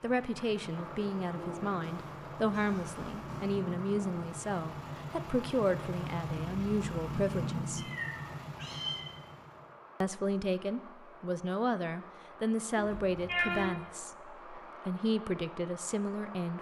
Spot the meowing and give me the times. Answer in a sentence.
You can hear the meowing from 1.8 to 3.5 s, from 7.8 to 9.0 s and from 12.8 to 13.7 s.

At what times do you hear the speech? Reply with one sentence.
The speech can be heard from 0.0 to 7.8 s and from 10.0 to 16.5 s.